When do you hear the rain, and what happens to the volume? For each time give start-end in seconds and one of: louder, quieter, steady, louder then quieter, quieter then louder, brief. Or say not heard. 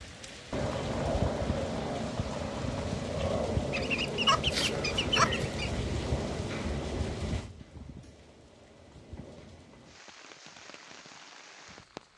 0.0-12.1 quieter.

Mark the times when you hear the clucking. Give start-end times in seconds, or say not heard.
3.7-5.7.